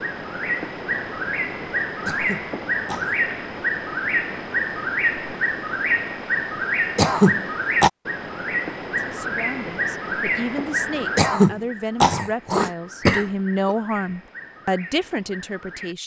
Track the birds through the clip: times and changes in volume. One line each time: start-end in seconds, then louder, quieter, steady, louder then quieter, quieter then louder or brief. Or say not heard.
0.0-15.9 quieter.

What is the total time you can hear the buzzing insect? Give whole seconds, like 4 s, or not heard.
not heard.